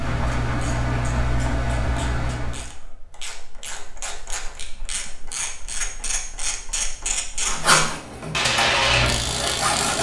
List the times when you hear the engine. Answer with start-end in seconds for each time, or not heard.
0.0-2.7, 8.1-9.8.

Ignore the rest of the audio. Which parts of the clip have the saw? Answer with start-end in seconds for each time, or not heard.
7.4-9.9.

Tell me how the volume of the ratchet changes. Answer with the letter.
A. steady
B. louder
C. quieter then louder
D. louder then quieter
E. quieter
B.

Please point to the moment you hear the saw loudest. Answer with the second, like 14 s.
8 s.